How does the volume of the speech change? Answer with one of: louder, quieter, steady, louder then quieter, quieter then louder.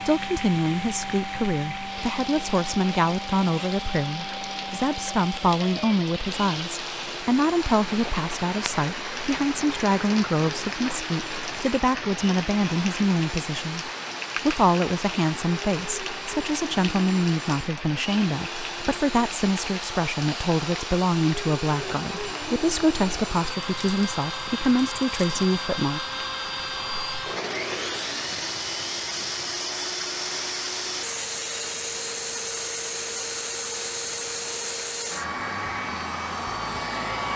steady.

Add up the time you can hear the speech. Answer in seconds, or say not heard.
26 s.